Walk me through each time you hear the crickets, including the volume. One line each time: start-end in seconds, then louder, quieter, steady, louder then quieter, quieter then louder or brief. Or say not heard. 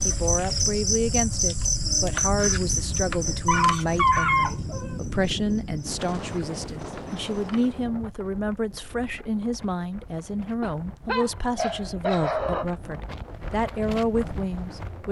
0.0-7.8 quieter.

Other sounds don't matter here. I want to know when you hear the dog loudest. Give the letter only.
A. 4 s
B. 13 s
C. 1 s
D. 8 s
A.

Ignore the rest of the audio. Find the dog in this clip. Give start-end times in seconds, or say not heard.
3.5-5.0, 10.6-12.7.